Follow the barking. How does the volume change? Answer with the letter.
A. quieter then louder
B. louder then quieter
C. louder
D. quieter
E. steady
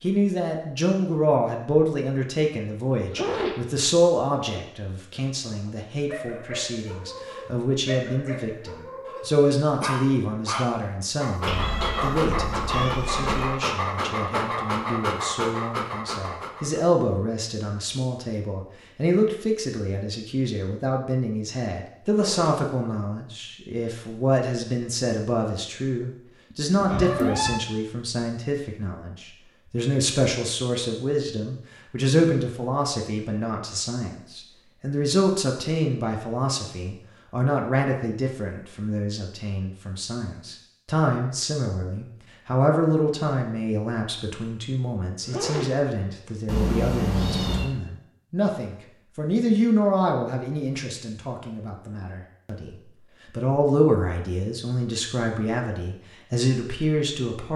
C.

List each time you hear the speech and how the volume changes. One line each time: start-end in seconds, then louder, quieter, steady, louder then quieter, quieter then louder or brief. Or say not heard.
0.0-57.5 steady.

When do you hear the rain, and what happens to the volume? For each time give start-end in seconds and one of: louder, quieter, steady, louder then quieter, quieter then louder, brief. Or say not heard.
not heard.